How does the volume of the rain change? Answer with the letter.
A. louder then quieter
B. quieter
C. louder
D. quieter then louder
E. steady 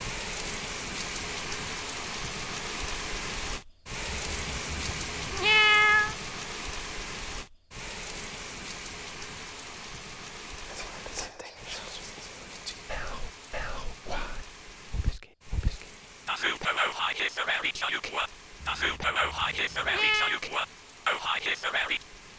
B.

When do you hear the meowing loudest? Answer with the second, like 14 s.
6 s.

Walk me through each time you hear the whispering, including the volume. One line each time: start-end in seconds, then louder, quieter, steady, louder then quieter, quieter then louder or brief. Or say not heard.
10.7-22.1 louder.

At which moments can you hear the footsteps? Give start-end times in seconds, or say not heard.
not heard.